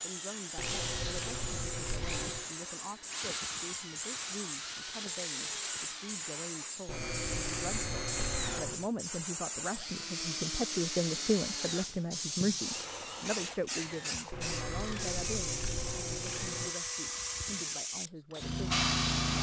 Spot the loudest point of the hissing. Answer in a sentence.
The volume of the hissing peaks at 19 seconds.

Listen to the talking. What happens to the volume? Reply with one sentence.
The volume of the talking goes up, then down.